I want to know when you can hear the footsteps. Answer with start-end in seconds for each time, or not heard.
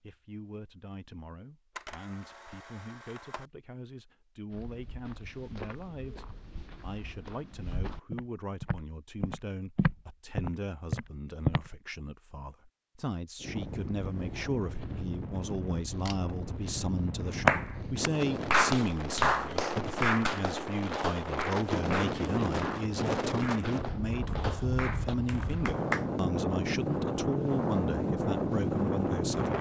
4.5-11.7.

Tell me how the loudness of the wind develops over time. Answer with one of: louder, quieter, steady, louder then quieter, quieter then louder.
louder.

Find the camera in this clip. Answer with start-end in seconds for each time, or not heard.
1.8-3.5, 15.9-16.4.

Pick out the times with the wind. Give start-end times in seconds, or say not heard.
13.4-29.5.